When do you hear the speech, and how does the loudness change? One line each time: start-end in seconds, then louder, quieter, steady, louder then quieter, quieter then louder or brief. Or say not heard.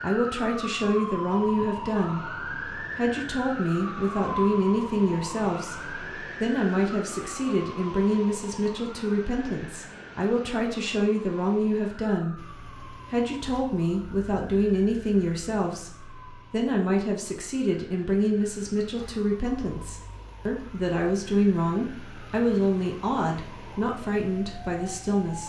0.0-25.4 steady.